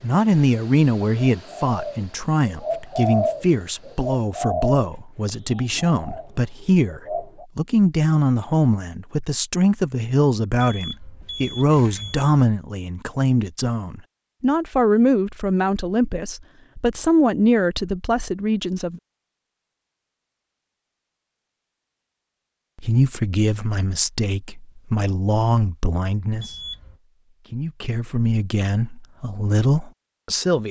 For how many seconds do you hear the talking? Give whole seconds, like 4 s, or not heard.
27 s.